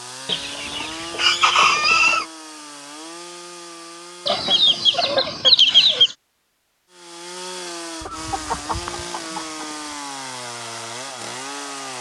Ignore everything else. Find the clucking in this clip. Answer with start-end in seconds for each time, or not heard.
0.2-2.2, 4.2-6.2, 8.0-9.9.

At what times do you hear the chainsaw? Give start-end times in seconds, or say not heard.
0.0-5.2, 6.9-11.9.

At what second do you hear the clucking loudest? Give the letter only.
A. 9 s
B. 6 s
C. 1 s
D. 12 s
B.